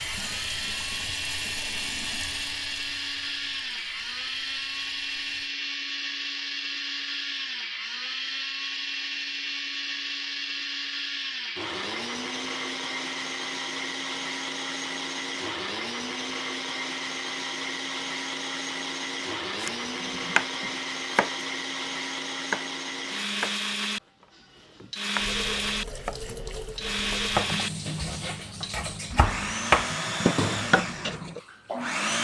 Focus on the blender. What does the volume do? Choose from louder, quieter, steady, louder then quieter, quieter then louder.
steady.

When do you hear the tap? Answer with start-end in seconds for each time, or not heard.
0.0-5.5, 25.1-32.0.